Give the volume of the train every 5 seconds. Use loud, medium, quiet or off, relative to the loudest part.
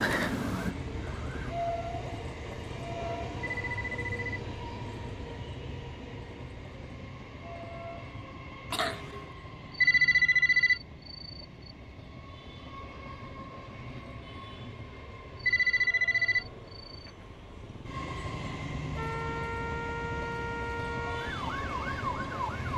loud, medium, medium, loud, loud.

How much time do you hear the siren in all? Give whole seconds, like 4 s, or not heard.
5 s.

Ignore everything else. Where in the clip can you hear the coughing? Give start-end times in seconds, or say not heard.
8.7-9.3.